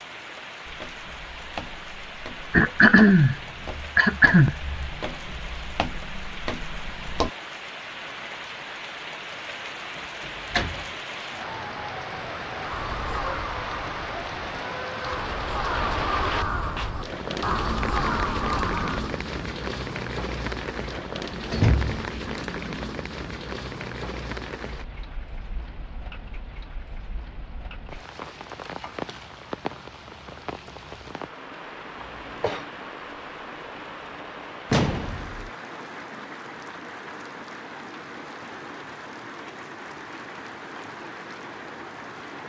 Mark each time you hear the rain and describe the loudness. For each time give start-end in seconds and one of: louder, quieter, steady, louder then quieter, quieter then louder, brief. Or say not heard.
0.0-42.4 louder then quieter.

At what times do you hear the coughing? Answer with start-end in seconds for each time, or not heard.
2.5-4.9, 32.0-32.6.